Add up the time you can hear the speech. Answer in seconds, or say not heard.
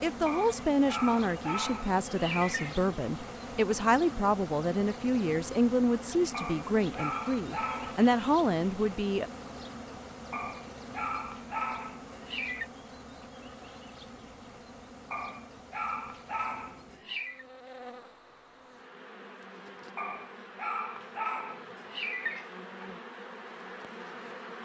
9 s.